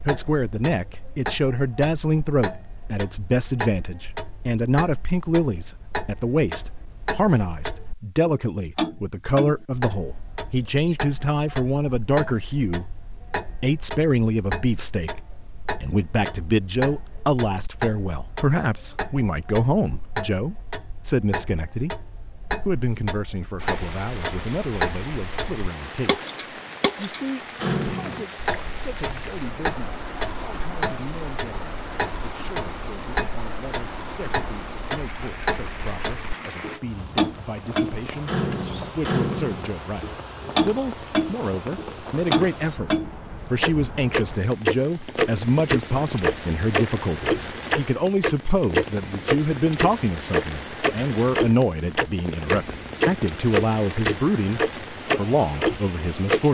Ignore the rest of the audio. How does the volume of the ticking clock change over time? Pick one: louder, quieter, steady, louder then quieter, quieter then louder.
louder.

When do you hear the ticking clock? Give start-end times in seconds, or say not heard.
0.0-56.4.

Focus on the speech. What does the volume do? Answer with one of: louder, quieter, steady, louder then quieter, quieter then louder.
quieter then louder.